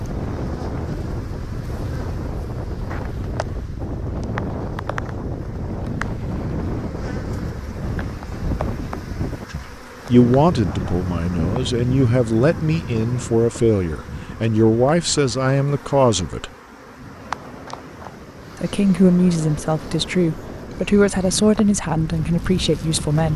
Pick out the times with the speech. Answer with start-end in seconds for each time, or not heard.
9.5-16.5, 18.6-23.3.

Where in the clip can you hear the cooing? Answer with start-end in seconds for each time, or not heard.
not heard.